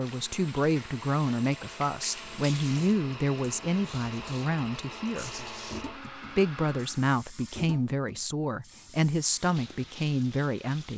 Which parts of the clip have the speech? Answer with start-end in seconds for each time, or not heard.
0.0-5.5, 6.3-10.9.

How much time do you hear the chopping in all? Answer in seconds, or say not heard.
not heard.